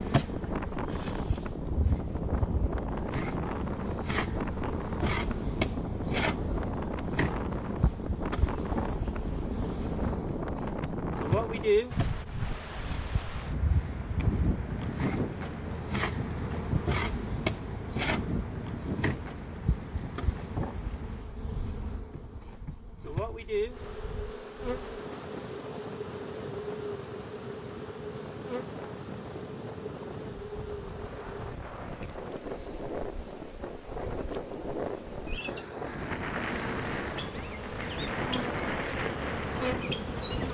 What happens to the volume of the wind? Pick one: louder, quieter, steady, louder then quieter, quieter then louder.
quieter then louder.